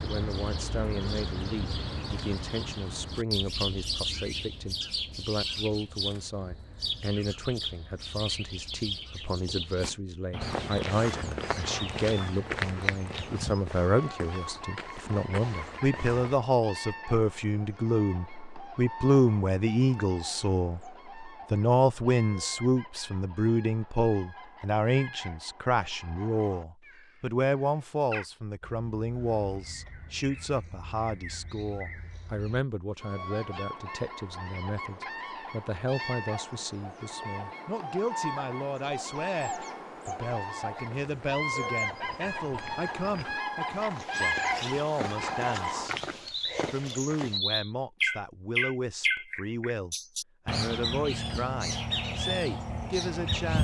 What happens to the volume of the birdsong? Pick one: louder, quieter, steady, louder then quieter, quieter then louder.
quieter then louder.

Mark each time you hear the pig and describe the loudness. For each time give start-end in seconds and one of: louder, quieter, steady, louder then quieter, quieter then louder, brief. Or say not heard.
not heard.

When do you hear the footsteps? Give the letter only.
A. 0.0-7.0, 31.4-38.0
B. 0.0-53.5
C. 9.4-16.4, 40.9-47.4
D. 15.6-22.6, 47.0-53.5
C.